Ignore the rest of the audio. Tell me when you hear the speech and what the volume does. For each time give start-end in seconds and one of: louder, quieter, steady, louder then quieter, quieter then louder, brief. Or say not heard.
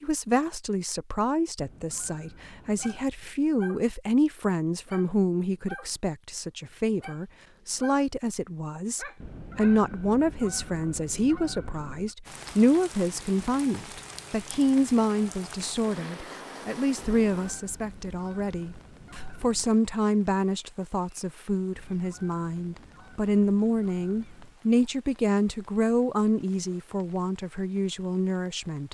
0.0-28.8 steady.